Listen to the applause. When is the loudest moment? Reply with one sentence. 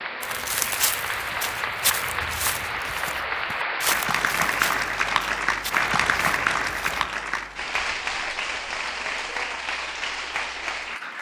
The loudest moment of the applause is at 6 seconds.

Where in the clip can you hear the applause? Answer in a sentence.
The applause can be heard from 0.0 to 11.1 s.